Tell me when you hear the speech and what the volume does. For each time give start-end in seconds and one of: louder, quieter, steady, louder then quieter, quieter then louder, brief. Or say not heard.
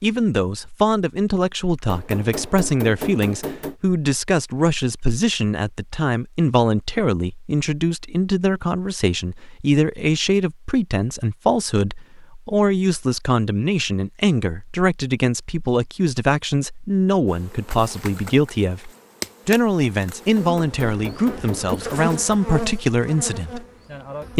0.0-23.6 steady.